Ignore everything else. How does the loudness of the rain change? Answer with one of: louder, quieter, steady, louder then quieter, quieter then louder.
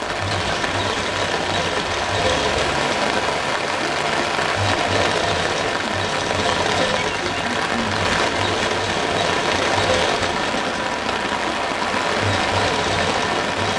steady.